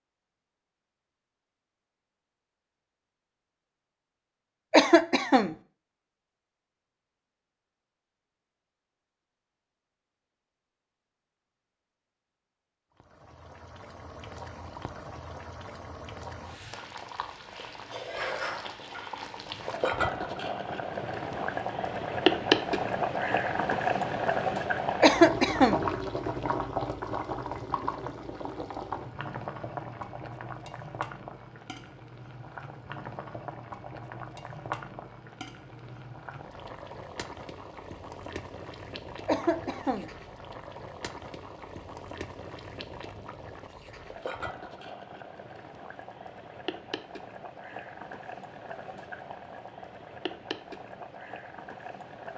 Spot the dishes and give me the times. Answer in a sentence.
You can't hear the dishes here.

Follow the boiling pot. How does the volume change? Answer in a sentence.
The loudness of the boiling pot goes up, then down.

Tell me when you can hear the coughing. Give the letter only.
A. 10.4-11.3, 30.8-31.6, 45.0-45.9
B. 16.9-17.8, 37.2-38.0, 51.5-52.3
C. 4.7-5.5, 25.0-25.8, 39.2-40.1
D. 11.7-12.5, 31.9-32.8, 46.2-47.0
C.